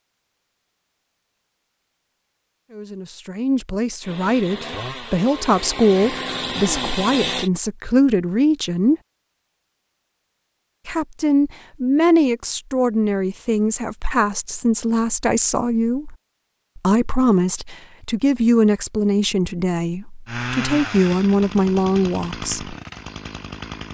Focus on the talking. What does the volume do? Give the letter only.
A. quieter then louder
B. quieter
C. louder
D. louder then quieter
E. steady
E.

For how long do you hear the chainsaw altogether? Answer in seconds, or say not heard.
7 s.